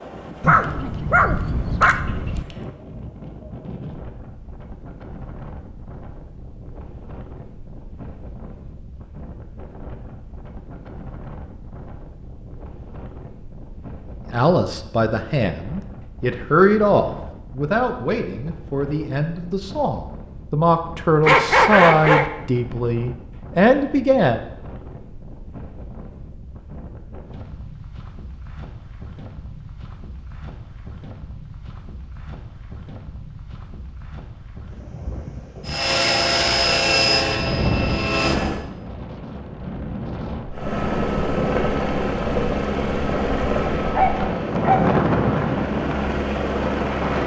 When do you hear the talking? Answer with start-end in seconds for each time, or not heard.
14.3-24.4.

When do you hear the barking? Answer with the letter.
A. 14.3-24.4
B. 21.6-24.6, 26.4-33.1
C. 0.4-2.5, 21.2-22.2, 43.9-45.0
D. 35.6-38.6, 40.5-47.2
C.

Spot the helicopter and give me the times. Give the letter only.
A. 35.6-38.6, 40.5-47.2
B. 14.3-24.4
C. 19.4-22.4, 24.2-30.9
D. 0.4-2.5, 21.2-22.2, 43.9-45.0
A.